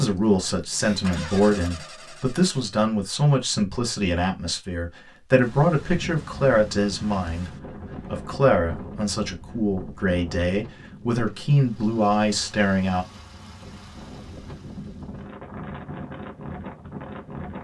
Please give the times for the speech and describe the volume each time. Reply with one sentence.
You can hear the speech from 0.0 to 13.1 s, at a steady volume.